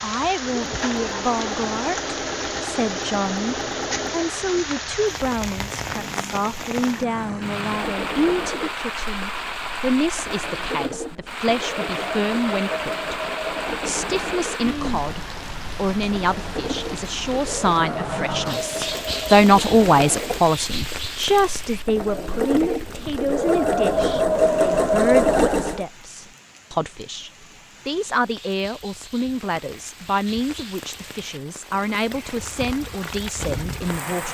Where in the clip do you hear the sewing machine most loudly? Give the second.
25 s.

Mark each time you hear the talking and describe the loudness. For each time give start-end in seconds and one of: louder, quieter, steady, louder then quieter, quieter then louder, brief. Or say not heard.
0.0-13.2 steady
13.8-34.2 louder then quieter.